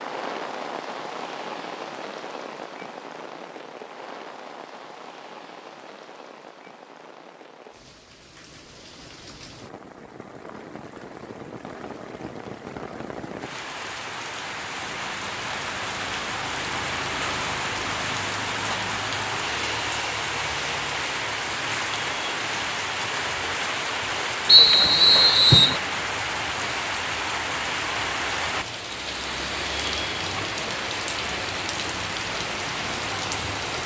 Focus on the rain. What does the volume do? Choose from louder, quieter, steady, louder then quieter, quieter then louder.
louder.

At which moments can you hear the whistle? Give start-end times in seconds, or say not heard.
24.4-25.8.